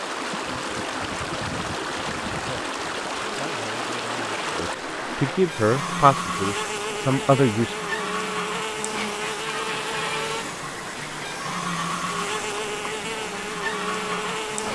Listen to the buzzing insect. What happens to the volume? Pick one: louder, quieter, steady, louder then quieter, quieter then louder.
louder.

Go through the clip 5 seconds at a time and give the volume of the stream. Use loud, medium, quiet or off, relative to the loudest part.
loud, medium, medium.